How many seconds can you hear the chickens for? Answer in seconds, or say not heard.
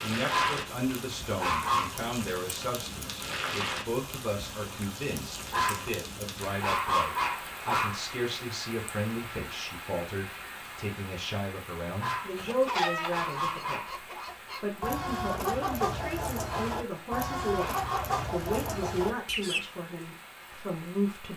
7 s.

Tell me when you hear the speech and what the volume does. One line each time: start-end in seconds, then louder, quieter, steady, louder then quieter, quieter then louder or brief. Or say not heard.
0.0-21.3 steady.